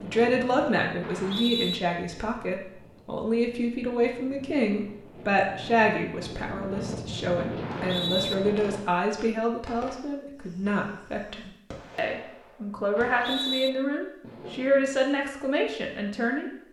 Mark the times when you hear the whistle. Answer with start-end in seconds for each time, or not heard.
1.0-1.8, 7.6-8.3, 12.9-13.7.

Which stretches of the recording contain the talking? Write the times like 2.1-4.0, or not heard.
0.0-16.6.